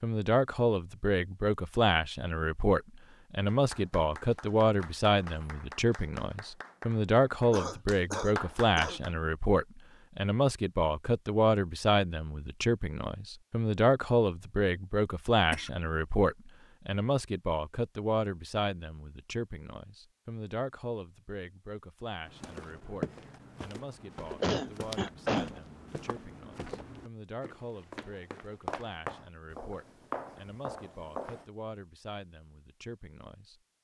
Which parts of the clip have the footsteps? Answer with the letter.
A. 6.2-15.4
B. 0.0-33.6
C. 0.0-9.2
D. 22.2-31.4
D.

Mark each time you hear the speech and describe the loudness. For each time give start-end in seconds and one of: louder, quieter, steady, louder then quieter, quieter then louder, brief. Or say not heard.
0.0-33.6 quieter.